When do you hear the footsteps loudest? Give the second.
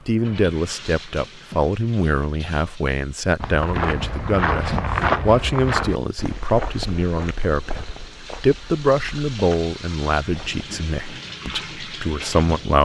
5 s.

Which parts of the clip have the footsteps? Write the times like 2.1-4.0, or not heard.
3.4-10.7.